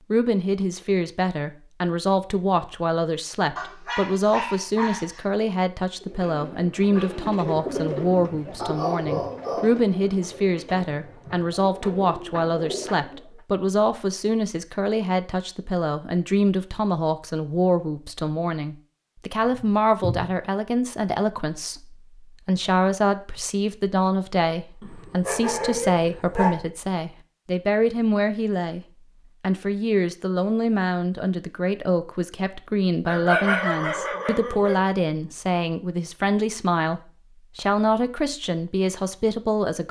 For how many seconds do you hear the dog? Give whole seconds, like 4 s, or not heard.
7 s.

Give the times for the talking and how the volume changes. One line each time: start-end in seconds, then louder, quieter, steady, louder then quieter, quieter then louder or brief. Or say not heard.
0.1-39.8 steady.